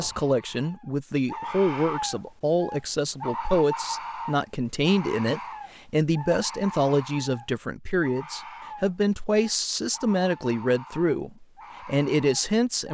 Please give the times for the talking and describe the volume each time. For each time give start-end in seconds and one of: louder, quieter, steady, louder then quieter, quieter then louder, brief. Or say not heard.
0.0-12.8 steady.